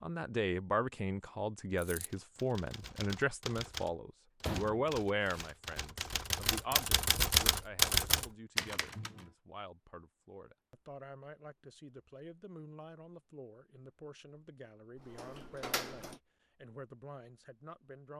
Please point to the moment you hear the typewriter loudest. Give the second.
8 s.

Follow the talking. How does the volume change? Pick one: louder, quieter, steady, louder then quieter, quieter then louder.
quieter.